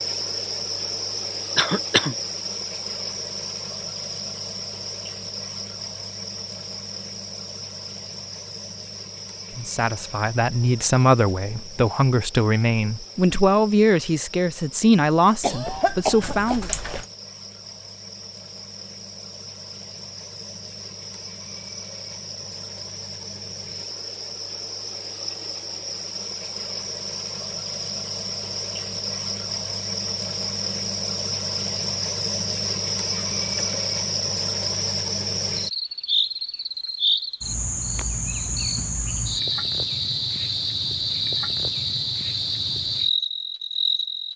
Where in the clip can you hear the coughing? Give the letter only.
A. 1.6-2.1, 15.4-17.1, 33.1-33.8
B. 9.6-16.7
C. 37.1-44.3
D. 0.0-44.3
A.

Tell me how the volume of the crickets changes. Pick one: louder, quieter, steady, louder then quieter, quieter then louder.
quieter then louder.